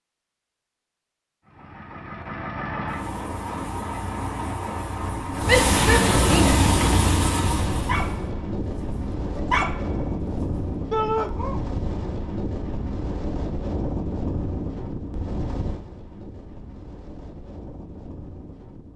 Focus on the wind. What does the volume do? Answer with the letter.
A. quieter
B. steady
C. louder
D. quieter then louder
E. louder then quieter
A.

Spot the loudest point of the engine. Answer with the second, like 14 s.
6 s.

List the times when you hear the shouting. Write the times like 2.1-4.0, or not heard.
5.5-6.5, 10.9-11.3.